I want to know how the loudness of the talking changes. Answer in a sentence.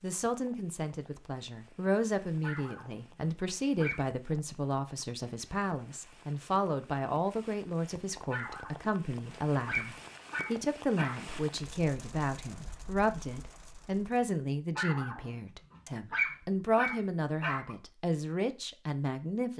The volume of the talking stays about the same.